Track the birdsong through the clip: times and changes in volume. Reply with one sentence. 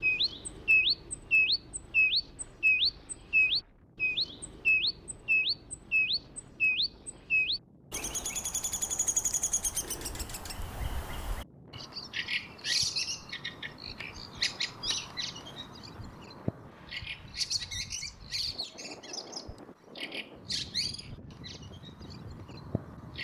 You can hear the birdsong from 0.0 to 23.1 s, getting quieter.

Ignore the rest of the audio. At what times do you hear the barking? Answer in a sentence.
The barking can't be heard in this clip.